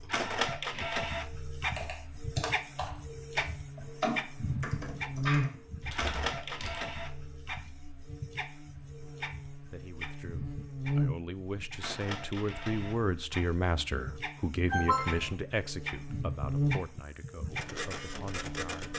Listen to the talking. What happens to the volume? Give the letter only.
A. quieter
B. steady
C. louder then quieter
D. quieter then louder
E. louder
C.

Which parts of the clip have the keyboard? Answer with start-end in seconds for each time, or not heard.
1.8-6.8.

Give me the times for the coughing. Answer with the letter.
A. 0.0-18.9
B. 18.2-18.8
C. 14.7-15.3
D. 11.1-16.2
C.